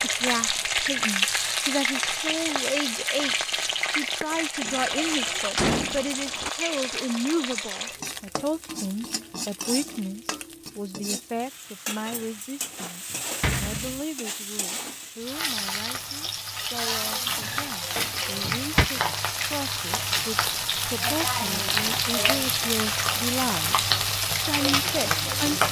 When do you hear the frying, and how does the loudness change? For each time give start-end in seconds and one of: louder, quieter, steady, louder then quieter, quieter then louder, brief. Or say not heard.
0.0-25.6 quieter then louder.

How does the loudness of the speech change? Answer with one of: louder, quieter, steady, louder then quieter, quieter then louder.
quieter then louder.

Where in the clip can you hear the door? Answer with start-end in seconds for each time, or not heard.
4.7-6.5, 12.1-14.0, 17.4-18.9.